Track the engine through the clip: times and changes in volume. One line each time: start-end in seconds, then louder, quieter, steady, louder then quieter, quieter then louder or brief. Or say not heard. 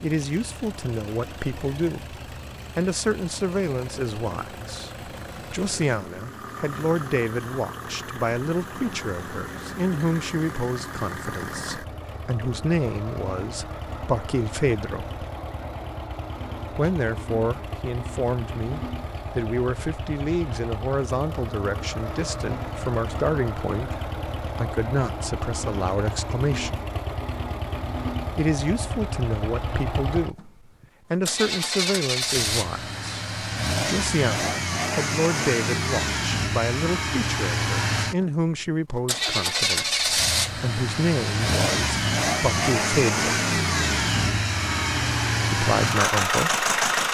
0.0-47.0 louder.